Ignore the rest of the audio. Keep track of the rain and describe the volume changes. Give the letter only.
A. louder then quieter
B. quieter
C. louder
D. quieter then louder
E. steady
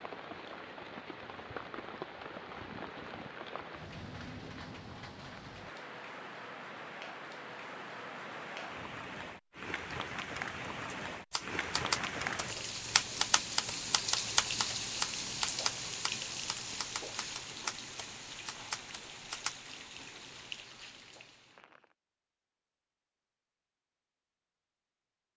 A.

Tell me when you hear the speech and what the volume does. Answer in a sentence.
You can't hear the speech here.